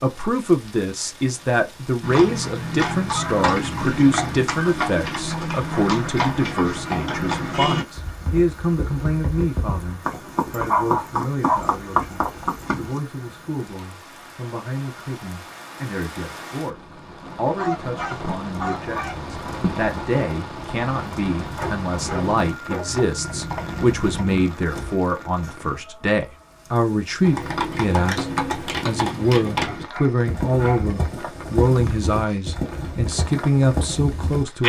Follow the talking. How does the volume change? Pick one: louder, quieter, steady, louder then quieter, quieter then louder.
quieter then louder.